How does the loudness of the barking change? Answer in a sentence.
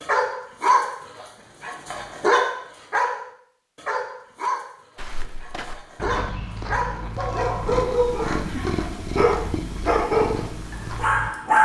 The volume of the barking goes down, then up.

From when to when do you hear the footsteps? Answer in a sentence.
The footsteps can be heard from 5.0 to 11.3 s.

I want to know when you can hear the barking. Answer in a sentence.
The barking can be heard from 0.0 to 11.6 s.